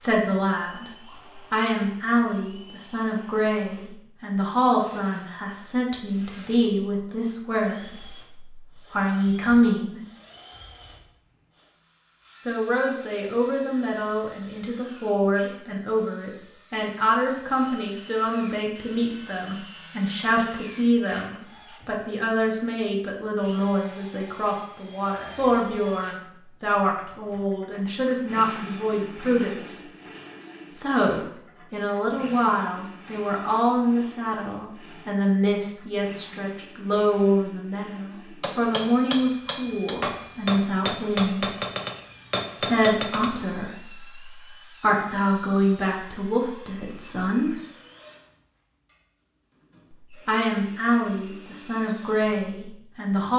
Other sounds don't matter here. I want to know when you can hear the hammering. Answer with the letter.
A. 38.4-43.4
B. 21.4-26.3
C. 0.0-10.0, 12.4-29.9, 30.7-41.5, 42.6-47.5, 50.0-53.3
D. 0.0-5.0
A.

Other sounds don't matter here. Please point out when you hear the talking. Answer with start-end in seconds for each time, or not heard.
0.0-10.0, 12.4-29.9, 30.7-41.5, 42.6-47.5, 50.0-53.3.